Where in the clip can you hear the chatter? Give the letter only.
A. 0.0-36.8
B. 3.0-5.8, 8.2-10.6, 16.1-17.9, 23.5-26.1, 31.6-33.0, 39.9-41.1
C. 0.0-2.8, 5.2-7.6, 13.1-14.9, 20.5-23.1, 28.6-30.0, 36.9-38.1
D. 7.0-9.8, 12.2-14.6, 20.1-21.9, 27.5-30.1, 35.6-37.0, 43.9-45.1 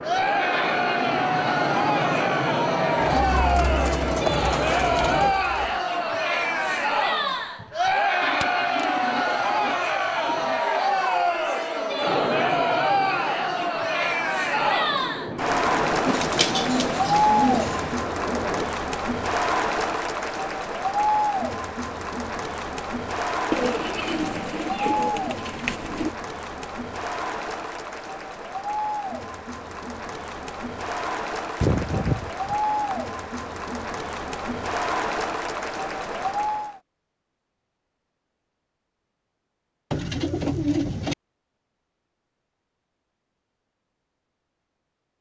A.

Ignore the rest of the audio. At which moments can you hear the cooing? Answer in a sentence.
The cooing can be heard from 3.0 to 5.8 s, from 8.2 to 10.6 s, from 16.1 to 17.9 s, from 23.5 to 26.1 s, from 31.6 to 33.0 s and from 39.9 to 41.1 s.